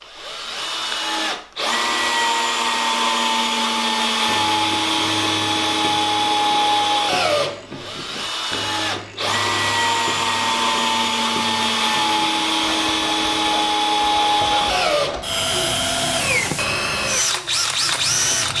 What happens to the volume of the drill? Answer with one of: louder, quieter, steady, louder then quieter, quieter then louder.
steady.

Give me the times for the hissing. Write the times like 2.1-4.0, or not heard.
15.3-18.5.